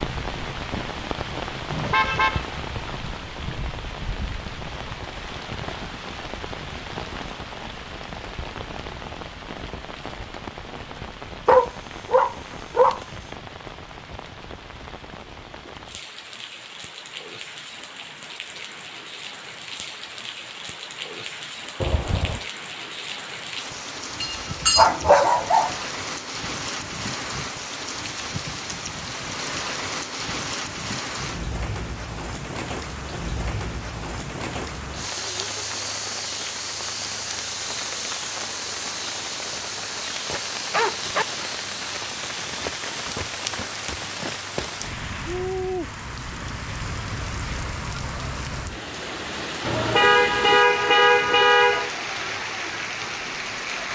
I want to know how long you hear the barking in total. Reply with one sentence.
You can hear the barking for 4 seconds altogether.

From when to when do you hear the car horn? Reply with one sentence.
You can hear the car horn from 1.7 to 2.5 s, from 21.8 to 22.4 s and from 49.6 to 51.9 s.